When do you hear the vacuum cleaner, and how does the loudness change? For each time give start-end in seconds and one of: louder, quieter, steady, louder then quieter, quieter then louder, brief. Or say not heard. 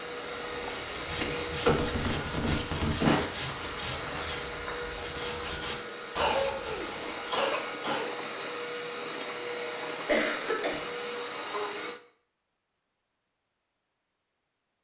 0.0-12.0 steady.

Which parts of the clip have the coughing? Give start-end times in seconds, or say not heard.
1.1-3.2, 6.2-8.1, 10.1-10.8.